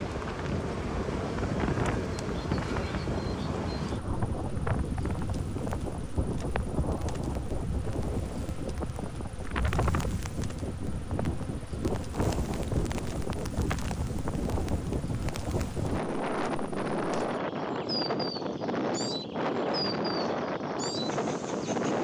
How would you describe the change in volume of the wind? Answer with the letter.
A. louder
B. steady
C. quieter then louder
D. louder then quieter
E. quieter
B.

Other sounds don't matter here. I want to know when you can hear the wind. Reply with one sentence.
The wind can be heard from 0.0 to 21.9 s.